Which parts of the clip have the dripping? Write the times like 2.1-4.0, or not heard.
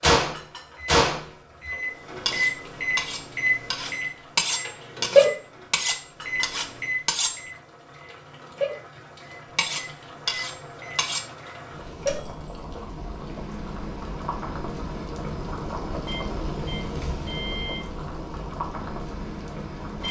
not heard.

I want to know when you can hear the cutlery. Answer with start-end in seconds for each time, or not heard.
2.2-7.4, 9.6-11.2.